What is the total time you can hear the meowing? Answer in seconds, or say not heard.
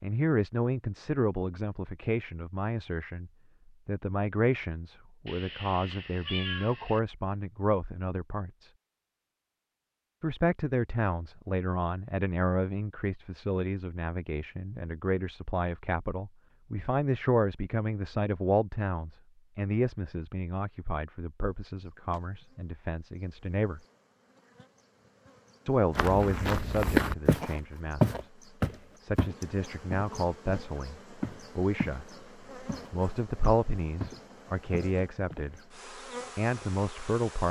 2 s.